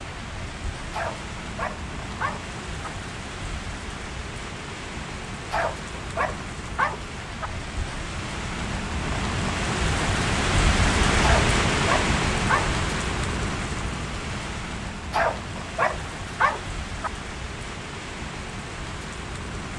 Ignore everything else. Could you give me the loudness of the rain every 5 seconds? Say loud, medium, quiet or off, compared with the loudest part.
medium, medium, loud, medium.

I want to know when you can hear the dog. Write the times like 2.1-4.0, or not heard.
0.9-2.9, 5.5-7.5, 11.2-12.8, 15.1-17.1.